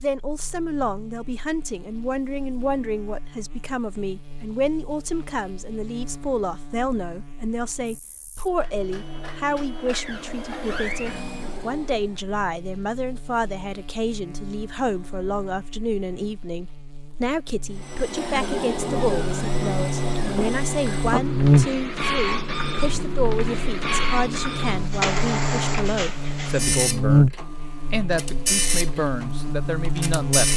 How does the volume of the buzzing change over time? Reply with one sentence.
The volume of the buzzing goes up.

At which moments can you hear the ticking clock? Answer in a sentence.
The ticking clock can't be heard in this clip.